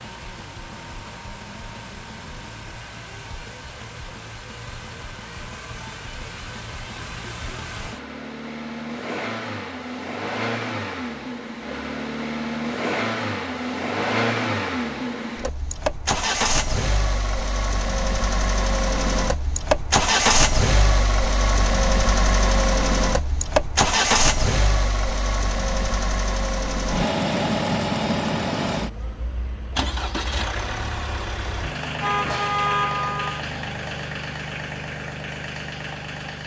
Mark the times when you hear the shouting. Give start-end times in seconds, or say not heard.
not heard.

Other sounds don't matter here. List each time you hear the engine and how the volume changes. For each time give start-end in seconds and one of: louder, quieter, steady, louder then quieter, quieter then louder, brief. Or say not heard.
0.0-36.4 louder then quieter.